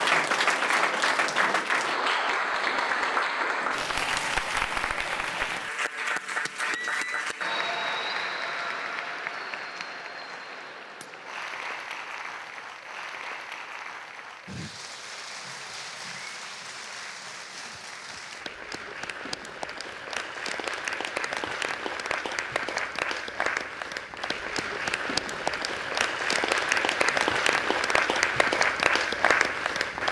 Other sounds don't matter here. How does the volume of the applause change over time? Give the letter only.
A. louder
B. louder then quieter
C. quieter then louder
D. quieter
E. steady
C.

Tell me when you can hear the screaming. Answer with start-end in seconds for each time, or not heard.
6.6-7.2.